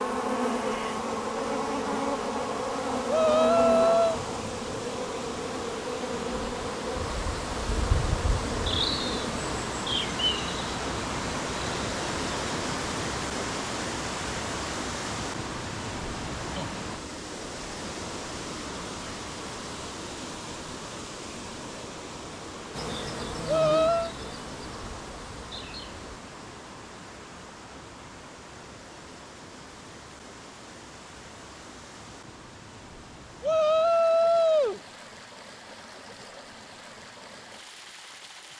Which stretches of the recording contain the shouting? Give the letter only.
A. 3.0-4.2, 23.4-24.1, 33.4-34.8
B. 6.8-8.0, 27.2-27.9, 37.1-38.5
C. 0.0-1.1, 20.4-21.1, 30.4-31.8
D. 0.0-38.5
A.